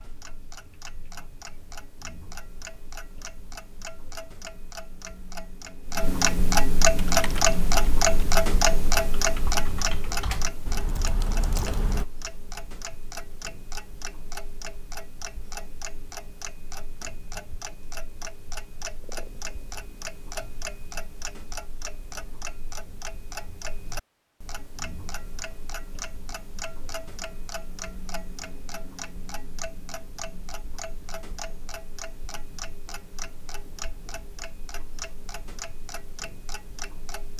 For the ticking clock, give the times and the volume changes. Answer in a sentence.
The ticking clock can be heard from 0.0 to 37.3 s, getting quieter.